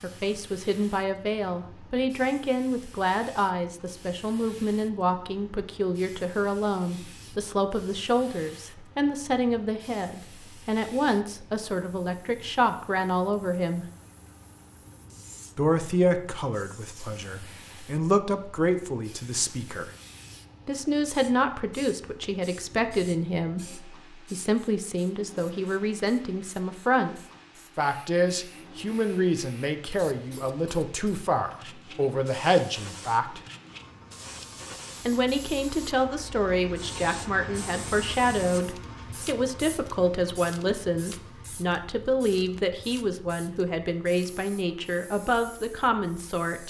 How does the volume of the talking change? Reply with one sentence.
The loudness of the talking stays about the same.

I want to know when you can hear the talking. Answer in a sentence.
You can hear the talking from 0.0 to 13.8 s, from 15.6 to 19.9 s, from 20.6 to 27.1 s, from 27.8 to 33.4 s and from 35.0 to 46.6 s.